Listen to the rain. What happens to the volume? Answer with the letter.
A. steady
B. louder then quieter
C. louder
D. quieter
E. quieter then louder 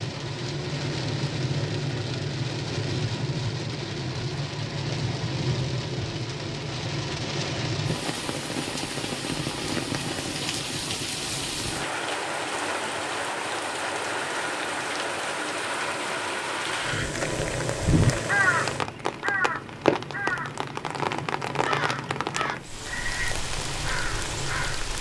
A.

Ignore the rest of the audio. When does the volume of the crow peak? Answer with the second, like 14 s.
18 s.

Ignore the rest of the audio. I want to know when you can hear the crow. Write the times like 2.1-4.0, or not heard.
16.7-24.9.